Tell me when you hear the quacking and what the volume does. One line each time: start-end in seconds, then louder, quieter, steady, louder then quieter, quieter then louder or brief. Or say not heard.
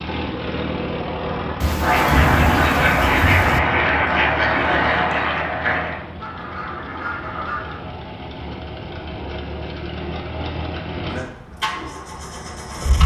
1.8-7.9 quieter.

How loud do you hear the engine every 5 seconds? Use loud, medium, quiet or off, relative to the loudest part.
loud, medium, loud.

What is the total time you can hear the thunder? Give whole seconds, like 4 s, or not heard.
2 s.